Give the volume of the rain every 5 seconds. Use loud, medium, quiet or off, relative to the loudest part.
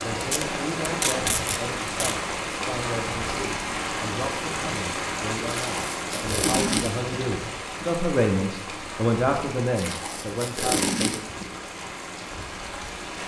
loud, loud, medium.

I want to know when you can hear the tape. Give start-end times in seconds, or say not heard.
0.2-2.1, 5.5-7.0, 9.8-11.4.